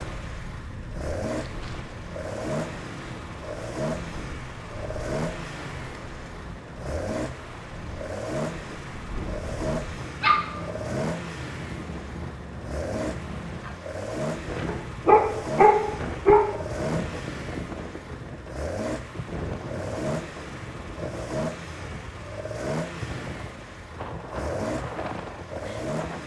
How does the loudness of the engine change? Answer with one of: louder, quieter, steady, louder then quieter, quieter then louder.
steady.